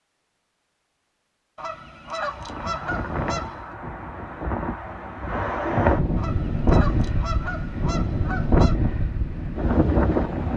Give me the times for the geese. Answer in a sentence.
The geese can be heard from 1.6 to 3.8 s and from 6.2 to 8.8 s.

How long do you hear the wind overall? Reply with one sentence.
The wind can be heard for 8 seconds in total.